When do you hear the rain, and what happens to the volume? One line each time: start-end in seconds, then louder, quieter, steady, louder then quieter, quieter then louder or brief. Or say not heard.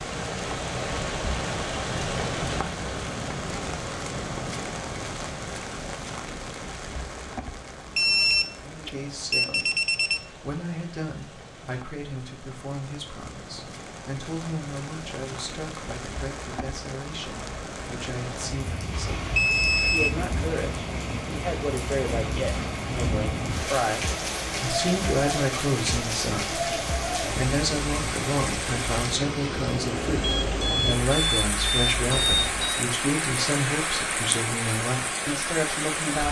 0.0-36.2 quieter then louder.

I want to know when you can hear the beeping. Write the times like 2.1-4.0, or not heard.
8.0-10.2, 18.9-20.1, 30.2-32.9.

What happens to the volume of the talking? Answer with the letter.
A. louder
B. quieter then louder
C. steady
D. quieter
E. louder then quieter
A.